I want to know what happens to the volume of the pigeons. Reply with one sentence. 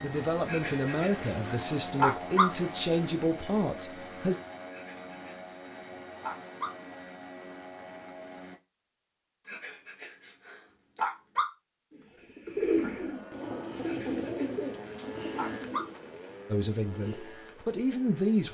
The volume of the pigeons goes down.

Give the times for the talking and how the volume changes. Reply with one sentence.
You can hear the talking from 0.0 to 4.3 s, at a steady volume; and briefly from 16.5 to 18.4 s.